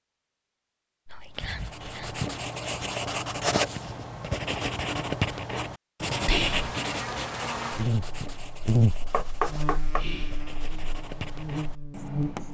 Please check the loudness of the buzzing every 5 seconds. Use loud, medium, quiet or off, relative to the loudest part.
off, loud, medium.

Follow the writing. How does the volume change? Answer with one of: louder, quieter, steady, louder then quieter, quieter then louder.
quieter.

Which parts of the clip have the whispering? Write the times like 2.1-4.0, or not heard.
1.1-2.2, 6.2-6.7, 9.9-10.4.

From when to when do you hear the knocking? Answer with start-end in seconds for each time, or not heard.
9.1-10.1.